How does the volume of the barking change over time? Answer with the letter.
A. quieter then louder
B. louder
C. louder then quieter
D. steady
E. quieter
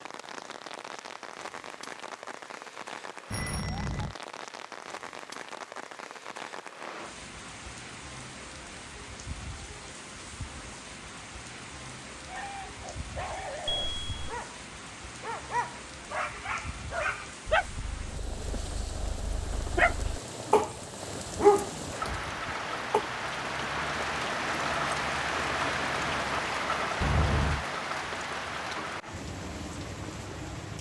B.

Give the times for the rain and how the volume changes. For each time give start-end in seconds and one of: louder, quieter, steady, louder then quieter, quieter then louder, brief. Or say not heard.
0.0-30.7 louder.